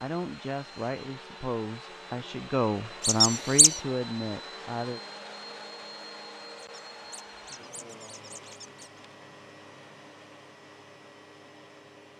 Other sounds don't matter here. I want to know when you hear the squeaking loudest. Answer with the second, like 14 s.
3 s.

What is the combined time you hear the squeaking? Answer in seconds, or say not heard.
3 s.